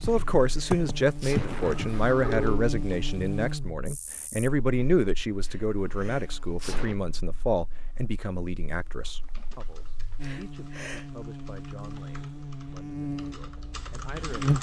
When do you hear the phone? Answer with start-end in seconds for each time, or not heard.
1.6-2.6.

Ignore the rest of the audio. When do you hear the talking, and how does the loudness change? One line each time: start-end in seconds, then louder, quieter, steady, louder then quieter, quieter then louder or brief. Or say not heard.
0.0-14.5 quieter.